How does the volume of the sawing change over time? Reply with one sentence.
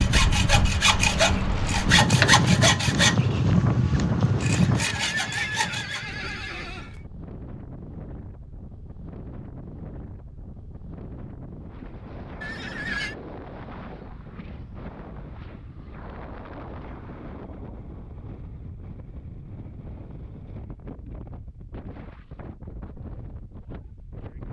The loudness of the sawing goes down.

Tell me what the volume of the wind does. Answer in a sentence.
The loudness of the wind goes down.